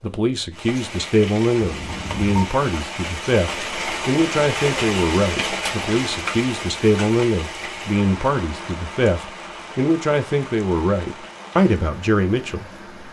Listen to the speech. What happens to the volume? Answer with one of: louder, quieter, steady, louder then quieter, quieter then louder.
steady.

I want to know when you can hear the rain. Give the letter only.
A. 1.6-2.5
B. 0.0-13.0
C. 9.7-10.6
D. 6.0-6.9
B.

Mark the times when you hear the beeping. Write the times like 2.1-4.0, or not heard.
1.6-2.5.